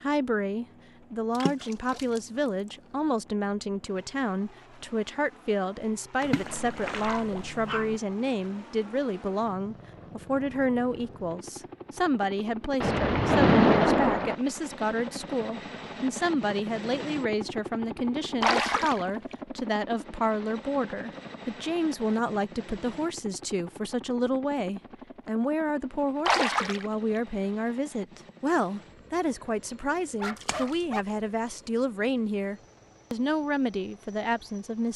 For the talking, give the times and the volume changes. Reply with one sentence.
The talking can be heard from 0.0 to 34.9 s, at a steady volume.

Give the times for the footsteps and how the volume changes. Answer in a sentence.
You can't hear the footsteps here.